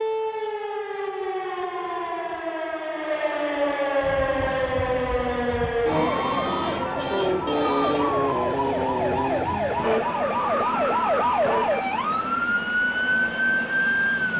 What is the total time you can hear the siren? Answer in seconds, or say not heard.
14 s.